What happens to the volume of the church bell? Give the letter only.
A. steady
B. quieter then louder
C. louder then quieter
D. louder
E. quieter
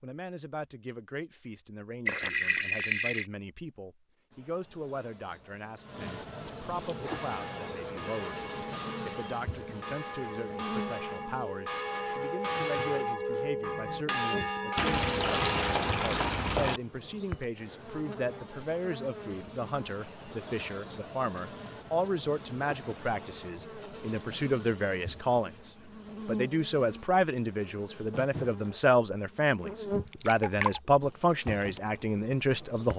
D.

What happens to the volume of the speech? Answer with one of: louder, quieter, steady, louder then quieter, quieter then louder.
louder.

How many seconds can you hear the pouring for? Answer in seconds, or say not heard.
4 s.